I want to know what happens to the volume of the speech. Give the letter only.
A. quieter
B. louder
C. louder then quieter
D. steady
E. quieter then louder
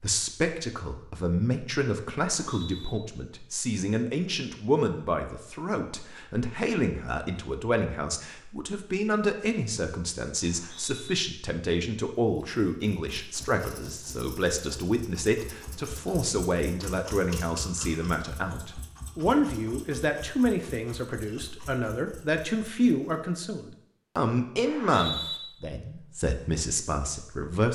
D.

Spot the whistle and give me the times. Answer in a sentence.
The whistle can be heard from 2.4 to 3.0 s, from 10.4 to 11.2 s and from 24.6 to 25.4 s.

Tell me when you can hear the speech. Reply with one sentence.
The speech can be heard from 0.0 to 27.7 s.